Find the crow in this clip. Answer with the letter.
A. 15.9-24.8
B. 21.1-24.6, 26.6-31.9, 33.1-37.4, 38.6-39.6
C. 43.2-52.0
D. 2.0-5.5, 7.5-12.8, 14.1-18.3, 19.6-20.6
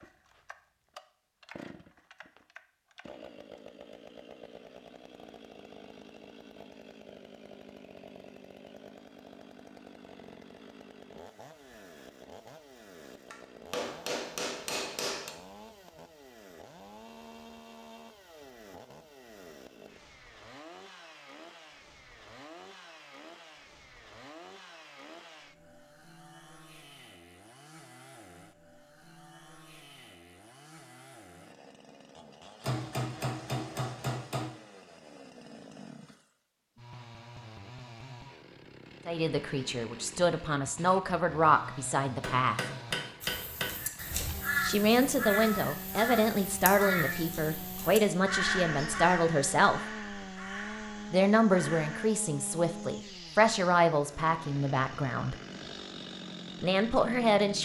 C.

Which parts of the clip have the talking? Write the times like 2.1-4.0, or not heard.
39.0-42.6, 44.6-49.8, 51.1-55.4, 56.6-57.6.